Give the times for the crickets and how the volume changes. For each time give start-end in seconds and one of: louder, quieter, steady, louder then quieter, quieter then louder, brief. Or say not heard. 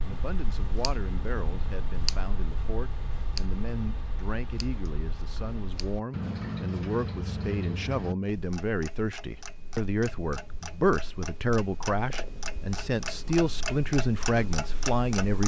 not heard.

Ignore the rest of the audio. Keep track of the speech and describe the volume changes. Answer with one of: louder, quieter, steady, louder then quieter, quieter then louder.
louder.